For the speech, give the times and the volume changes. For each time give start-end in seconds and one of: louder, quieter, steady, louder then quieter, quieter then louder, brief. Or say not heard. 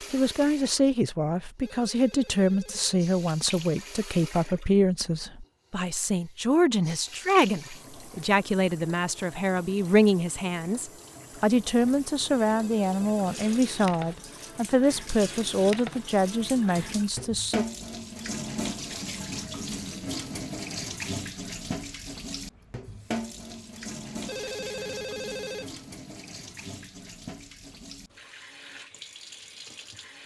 0.1-17.6 steady.